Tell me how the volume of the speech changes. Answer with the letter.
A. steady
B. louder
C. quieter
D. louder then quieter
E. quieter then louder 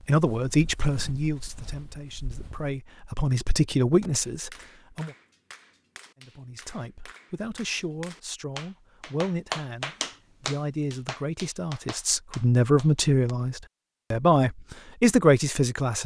E.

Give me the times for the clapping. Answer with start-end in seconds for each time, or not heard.
4.0-13.3.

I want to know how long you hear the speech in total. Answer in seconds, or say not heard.
15 s.